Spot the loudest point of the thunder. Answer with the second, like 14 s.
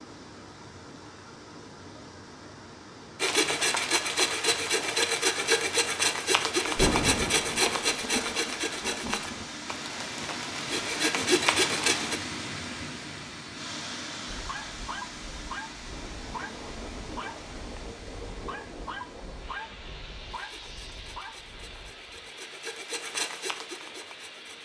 7 s.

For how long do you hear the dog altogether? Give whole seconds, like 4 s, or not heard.
8 s.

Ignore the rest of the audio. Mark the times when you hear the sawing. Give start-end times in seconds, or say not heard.
3.1-12.2, 20.3-24.6.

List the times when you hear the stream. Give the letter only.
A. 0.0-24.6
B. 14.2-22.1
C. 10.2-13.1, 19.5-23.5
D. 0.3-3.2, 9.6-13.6
A.